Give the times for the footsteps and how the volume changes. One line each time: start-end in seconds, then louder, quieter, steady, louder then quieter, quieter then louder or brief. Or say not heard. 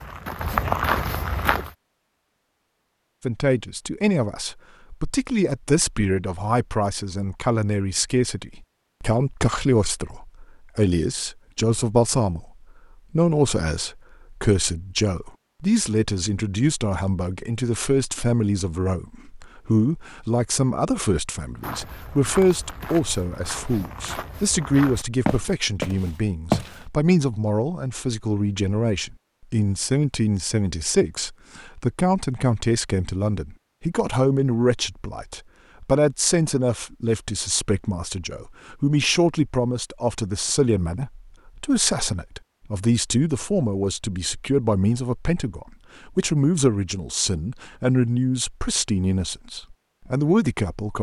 0.0-1.7 brief
21.6-26.9 louder.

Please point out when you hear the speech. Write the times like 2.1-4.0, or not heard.
3.2-12.5, 13.1-50.9.